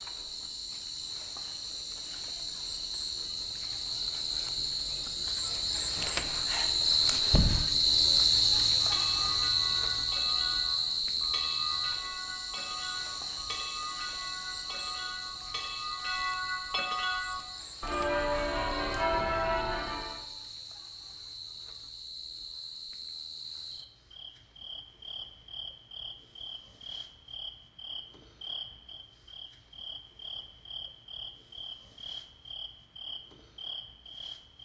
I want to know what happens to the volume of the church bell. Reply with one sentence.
The volume of the church bell goes up.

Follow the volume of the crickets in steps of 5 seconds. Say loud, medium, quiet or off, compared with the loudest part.
medium, loud, medium, quiet, quiet, quiet, quiet.